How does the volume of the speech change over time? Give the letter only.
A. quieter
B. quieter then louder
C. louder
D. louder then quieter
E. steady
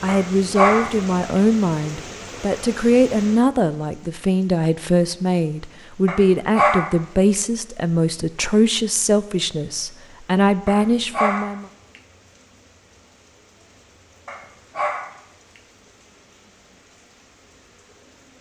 E.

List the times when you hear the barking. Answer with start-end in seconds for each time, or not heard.
0.1-1.4, 6.0-7.4, 10.7-12.0, 14.2-15.6.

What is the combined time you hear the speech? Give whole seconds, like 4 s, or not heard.
12 s.